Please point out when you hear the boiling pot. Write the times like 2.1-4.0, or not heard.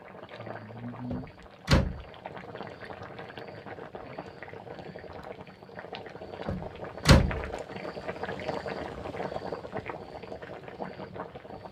0.0-11.6.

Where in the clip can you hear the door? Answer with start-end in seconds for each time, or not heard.
1.1-2.0, 6.5-7.5.